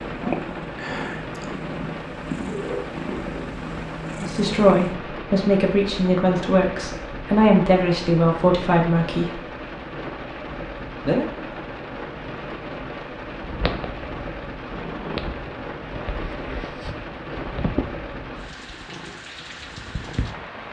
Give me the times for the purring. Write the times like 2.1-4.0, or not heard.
0.0-5.0, 13.2-20.6.